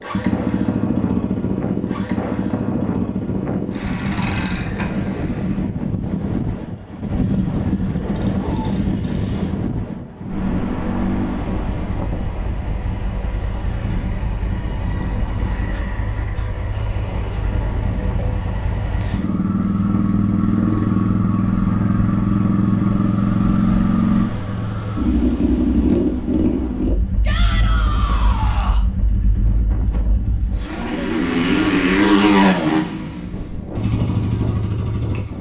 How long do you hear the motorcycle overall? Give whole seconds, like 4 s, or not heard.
35 s.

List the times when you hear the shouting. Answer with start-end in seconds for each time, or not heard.
27.2-28.9.